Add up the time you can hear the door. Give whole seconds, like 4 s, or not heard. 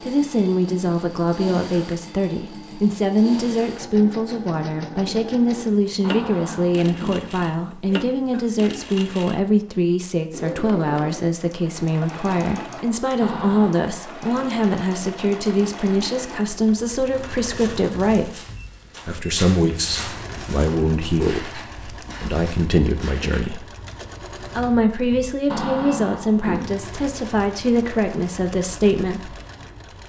3 s.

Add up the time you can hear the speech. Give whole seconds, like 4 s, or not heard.
28 s.